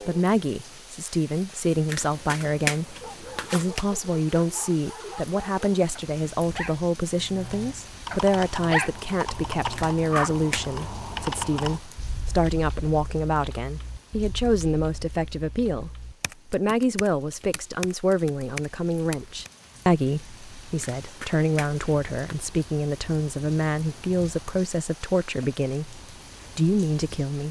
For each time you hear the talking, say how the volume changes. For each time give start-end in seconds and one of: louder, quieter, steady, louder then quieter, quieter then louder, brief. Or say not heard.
0.1-27.4 steady.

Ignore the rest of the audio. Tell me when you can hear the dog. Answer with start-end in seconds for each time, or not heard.
3.0-10.3.